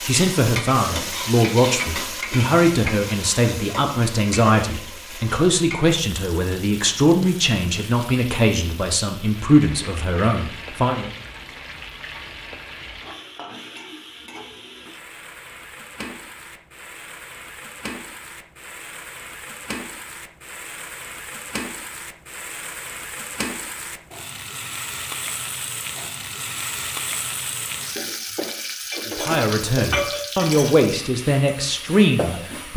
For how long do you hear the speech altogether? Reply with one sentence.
You can hear the speech for 15 seconds altogether.